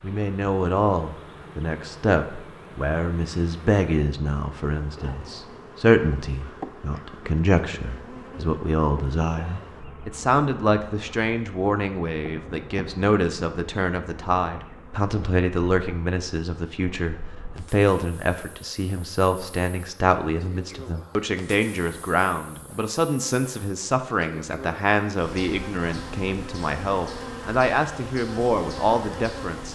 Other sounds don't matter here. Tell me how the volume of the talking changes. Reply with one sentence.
The volume of the talking stays about the same.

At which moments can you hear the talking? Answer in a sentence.
The talking can be heard from 0.0 to 29.7 s.